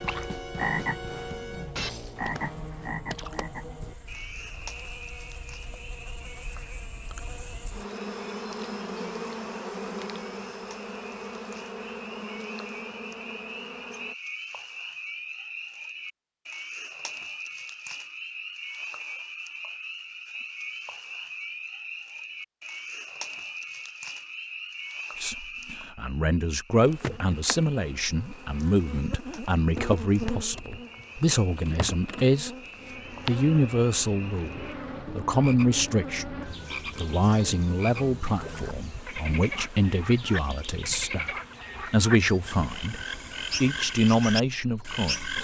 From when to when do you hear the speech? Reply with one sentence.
You can hear the speech from 25.2 to 32.5 s, from 33.2 to 43.0 s and from 43.6 to 45.3 s.